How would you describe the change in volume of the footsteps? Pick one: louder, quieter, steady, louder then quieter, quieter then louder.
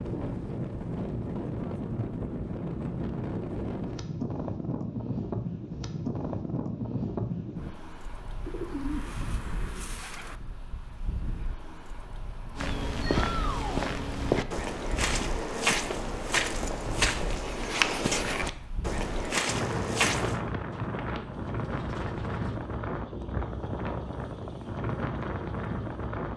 steady.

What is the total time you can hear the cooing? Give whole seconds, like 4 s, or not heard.
4 s.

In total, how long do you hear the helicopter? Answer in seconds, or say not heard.
not heard.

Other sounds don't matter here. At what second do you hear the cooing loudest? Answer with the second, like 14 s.
9 s.